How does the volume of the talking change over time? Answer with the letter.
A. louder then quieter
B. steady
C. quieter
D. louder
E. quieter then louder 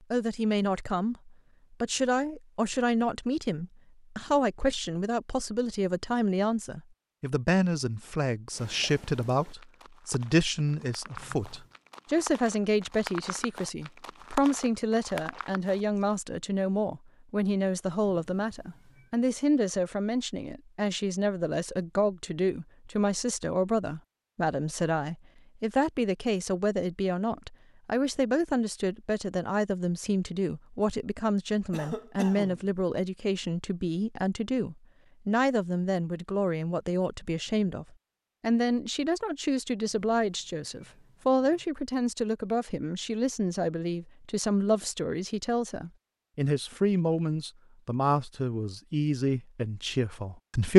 B.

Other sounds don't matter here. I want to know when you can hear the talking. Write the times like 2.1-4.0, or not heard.
0.1-50.7.